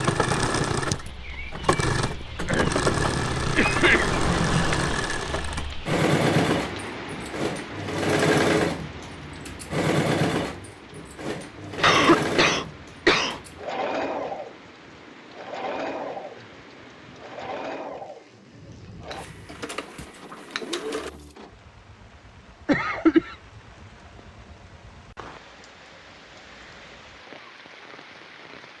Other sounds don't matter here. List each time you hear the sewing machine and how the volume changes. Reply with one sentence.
The sewing machine can be heard from 0.0 to 21.4 s, getting quieter.